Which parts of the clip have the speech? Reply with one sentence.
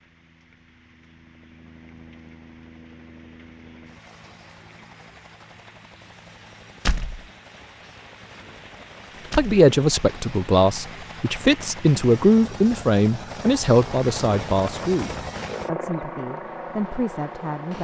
The speech can be heard from 9.3 to 17.7 s.